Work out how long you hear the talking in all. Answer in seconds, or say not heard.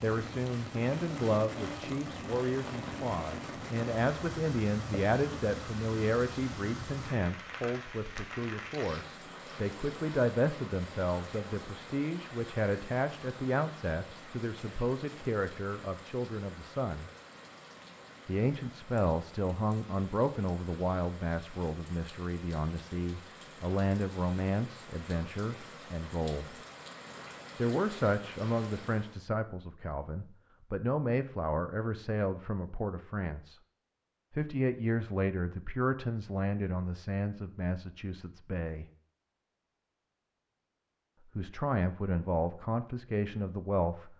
39 s.